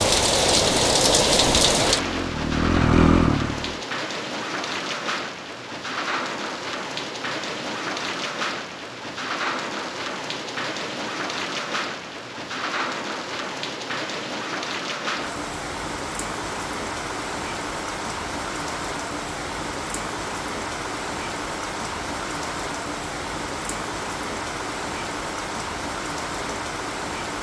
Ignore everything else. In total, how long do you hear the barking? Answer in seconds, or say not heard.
not heard.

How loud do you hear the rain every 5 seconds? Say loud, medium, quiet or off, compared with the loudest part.
loud, medium, medium, medium, medium, medium.